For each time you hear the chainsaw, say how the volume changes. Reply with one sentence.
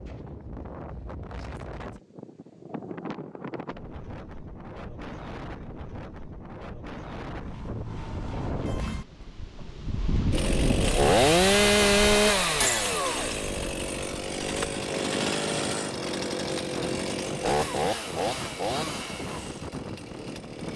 The chainsaw can be heard from 10.3 to 20.7 s, getting quieter.